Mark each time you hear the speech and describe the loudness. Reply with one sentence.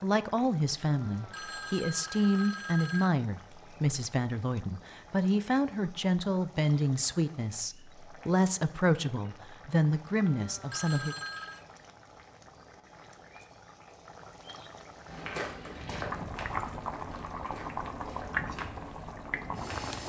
The speech can be heard from 0.0 to 11.2 s, at a steady volume.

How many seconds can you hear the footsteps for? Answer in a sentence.
The footsteps can be heard for 5 seconds in total.